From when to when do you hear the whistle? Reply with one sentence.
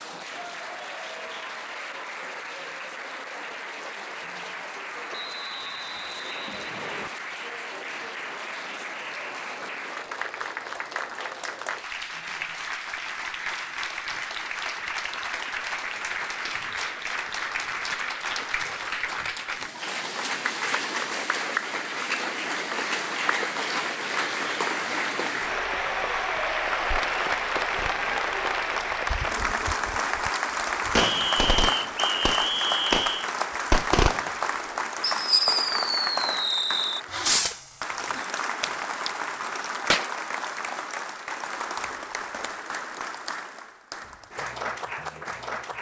The whistle can be heard from 5.1 to 7.1 s and from 30.9 to 33.3 s.